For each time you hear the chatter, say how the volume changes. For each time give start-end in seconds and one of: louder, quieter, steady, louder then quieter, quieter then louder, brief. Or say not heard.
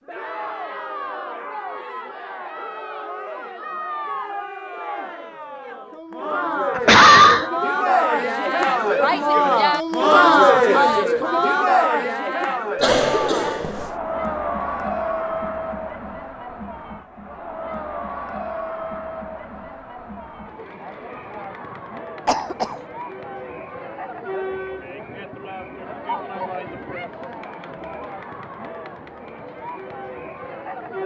0.1-31.0 louder then quieter.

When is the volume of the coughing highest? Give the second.
7 s.